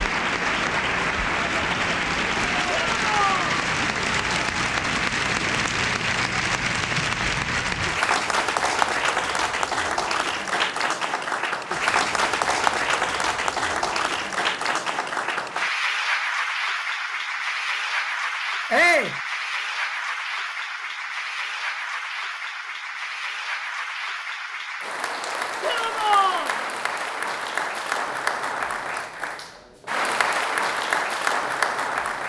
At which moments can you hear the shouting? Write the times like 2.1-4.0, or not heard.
2.6-3.5, 18.7-19.1, 25.6-26.5.